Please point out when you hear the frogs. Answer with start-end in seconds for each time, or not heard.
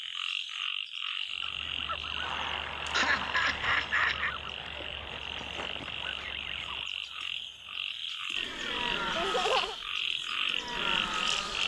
0.0-11.6.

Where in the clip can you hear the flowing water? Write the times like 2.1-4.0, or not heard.
not heard.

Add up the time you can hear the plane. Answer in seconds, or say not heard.
7 s.